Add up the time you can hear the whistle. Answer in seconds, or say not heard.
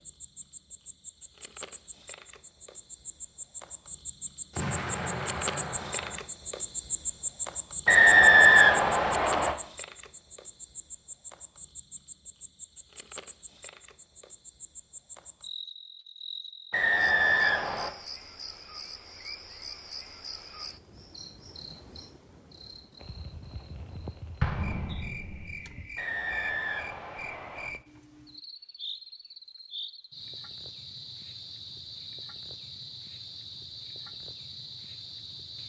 5 s.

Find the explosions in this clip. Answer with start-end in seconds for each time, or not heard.
4.5-6.2, 24.4-25.7.